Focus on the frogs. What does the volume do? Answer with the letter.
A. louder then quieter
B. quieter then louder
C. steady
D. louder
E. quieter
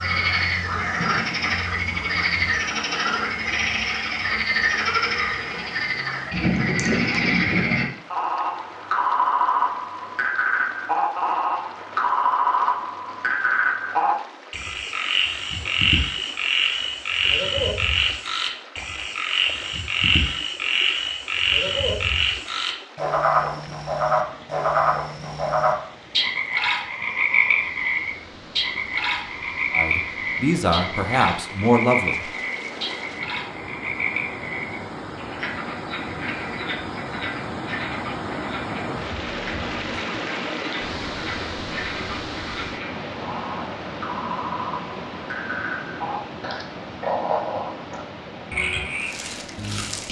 E.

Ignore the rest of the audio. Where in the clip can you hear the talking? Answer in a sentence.
The talking can be heard from 29.7 to 32.4 s.